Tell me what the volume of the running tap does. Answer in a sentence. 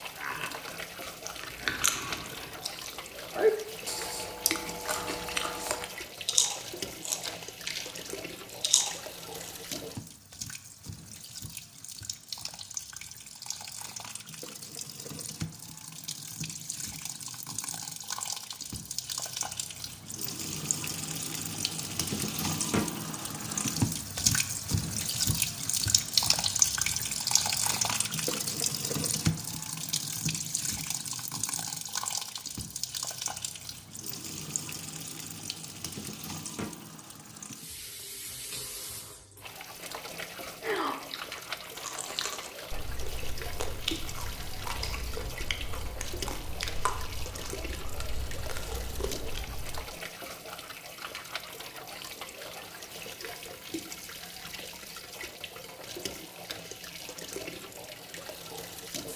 The volume of the running tap goes up, then down.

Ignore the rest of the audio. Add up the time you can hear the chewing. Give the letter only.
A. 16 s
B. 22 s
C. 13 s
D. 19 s
D.